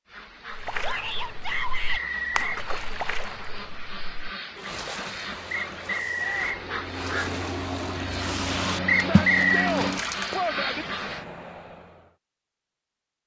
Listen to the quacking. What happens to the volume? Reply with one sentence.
The loudness of the quacking goes up.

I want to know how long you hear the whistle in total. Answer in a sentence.
You can hear the whistle for 3 seconds altogether.